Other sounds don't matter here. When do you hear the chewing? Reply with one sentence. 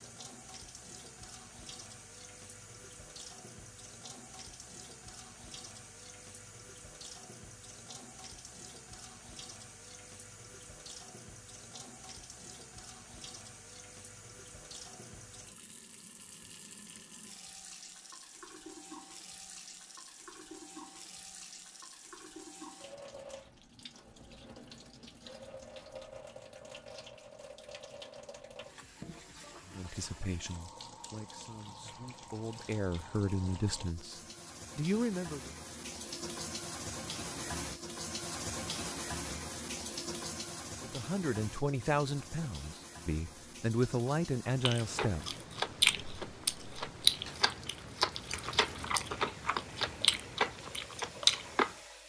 You can hear the chewing from 44.6 to 51.7 s.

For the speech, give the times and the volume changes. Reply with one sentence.
You can hear the speech from 29.6 to 35.5 s, getting quieter then louder; and from 40.8 to 45.4 s, getting quieter then louder.